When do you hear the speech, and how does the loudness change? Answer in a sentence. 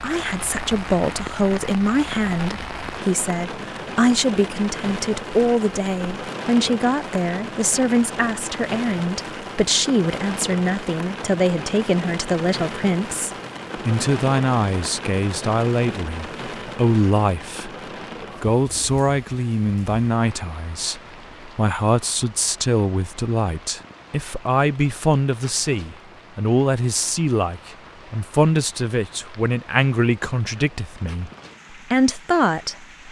The speech can be heard from 0.0 to 17.7 s, at a steady volume; and from 18.4 to 32.9 s, at a steady volume.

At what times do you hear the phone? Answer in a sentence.
The phone can't be heard in this clip.